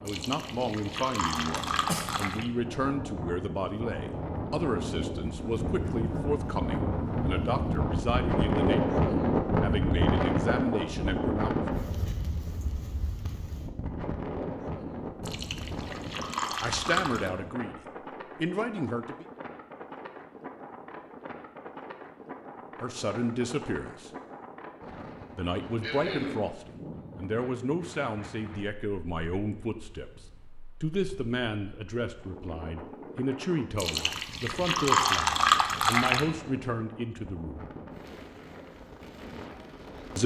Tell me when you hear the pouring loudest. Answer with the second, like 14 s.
35 s.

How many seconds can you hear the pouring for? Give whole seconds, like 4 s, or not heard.
7 s.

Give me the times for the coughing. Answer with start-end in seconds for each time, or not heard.
1.8-2.2, 25.8-26.5.